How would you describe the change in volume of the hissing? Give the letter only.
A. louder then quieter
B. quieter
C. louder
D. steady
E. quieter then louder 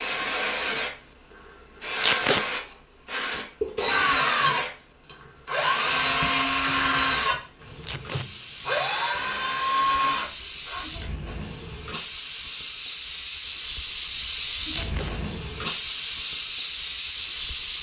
E.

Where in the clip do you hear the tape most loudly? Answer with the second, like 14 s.
2 s.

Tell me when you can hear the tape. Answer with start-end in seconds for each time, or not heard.
2.0-2.5, 7.8-8.2, 14.7-15.2.